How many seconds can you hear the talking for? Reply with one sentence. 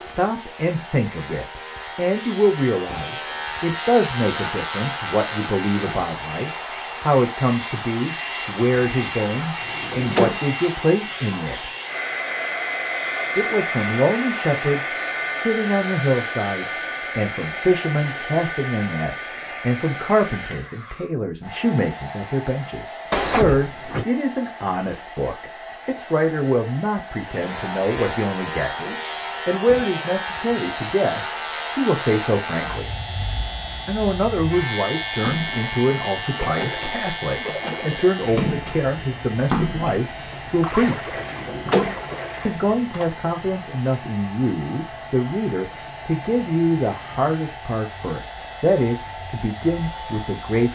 You can hear the talking for 47 seconds altogether.